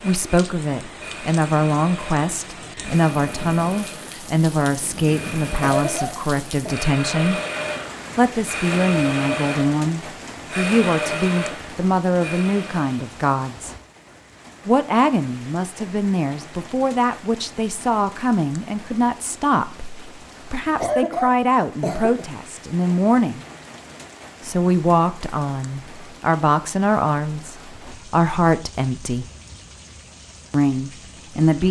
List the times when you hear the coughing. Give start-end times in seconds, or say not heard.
5.6-6.8, 20.8-22.2.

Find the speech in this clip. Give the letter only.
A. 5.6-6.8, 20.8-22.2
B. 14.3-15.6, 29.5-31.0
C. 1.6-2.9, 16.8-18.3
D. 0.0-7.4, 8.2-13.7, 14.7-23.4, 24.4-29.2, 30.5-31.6
D.